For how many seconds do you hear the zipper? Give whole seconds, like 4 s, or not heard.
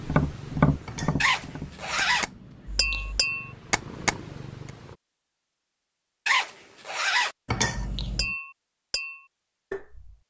4 s.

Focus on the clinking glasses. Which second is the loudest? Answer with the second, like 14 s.
8 s.